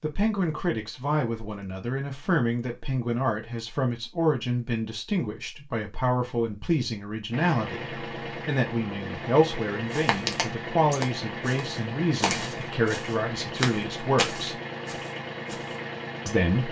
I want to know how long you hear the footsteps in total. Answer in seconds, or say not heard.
6 s.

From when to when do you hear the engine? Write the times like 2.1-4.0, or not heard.
7.3-16.6.